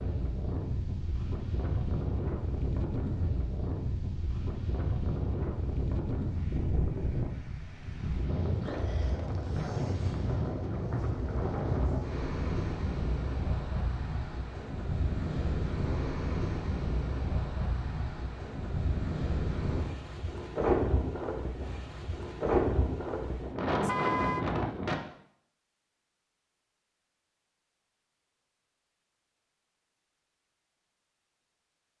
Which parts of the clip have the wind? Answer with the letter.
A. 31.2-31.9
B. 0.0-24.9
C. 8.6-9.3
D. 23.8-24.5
B.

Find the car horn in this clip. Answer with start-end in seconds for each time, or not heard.
23.8-24.5.